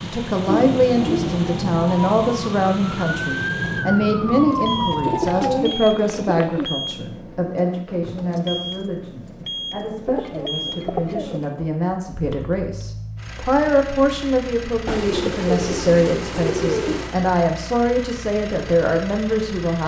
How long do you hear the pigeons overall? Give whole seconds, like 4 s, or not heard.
7 s.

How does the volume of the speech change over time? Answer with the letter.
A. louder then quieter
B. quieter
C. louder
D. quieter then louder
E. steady
D.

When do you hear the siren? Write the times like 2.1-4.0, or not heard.
0.0-6.0.